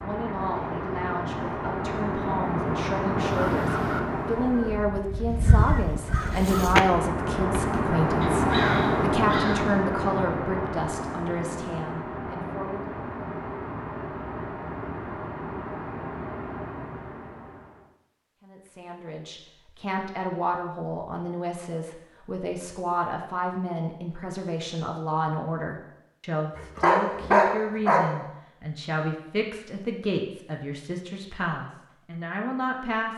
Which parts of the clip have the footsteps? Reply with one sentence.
The footsteps can't be heard in this clip.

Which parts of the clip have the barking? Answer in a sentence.
You can hear the barking from 26.6 to 28.1 s.